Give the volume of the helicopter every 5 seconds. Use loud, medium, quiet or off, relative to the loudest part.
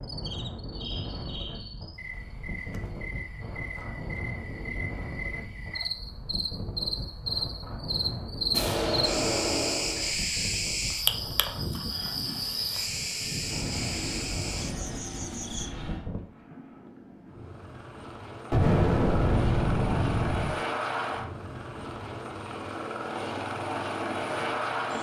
off, off, medium, medium, loud.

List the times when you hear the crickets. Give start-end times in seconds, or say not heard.
0.0-15.8.